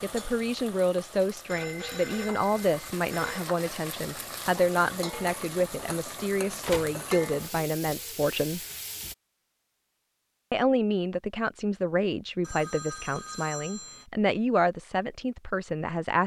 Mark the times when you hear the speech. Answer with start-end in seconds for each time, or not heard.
0.0-8.6, 10.5-16.2.